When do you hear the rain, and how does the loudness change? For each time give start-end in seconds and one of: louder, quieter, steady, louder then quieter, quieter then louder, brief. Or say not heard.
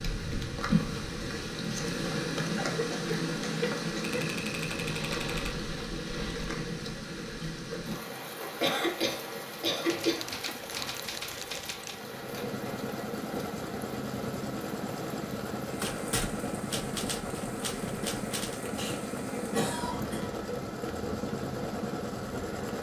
0.0-22.7 quieter.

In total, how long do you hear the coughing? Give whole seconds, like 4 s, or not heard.
5 s.